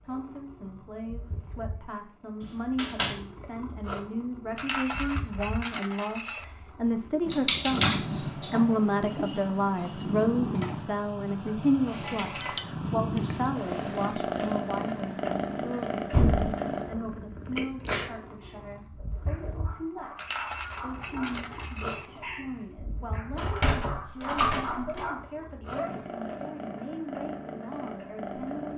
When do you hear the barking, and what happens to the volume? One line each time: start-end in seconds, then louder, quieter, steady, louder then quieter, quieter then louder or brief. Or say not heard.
18.4-25.9 louder.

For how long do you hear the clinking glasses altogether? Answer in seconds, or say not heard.
4 s.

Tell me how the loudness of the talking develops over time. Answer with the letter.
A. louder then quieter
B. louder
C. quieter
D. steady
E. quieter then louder
A.